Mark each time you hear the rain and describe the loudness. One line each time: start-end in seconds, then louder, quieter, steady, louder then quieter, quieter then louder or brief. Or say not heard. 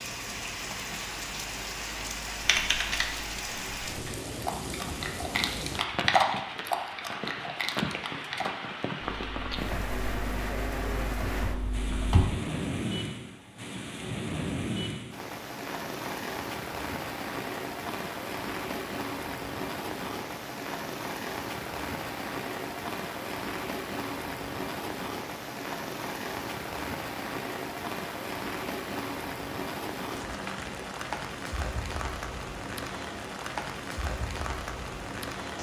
0.0-35.5 steady.